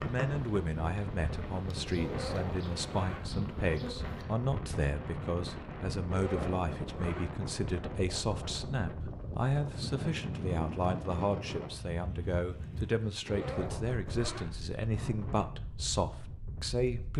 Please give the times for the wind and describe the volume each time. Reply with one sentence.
The wind can be heard from 0.0 to 17.1 s, at a steady volume.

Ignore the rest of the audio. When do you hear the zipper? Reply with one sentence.
The zipper can be heard from 2.0 to 3.3 s, from 6.0 to 7.3 s and from 13.2 to 14.6 s.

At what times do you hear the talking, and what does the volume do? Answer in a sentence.
The talking can be heard from 0.1 to 17.1 s, at a steady volume.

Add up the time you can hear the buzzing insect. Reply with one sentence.
You can hear the buzzing insect for 4 seconds altogether.